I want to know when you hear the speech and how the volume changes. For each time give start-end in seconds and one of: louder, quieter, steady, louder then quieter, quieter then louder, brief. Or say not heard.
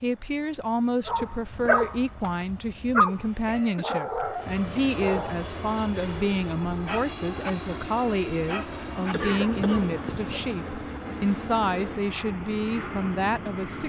0.0-13.8 steady.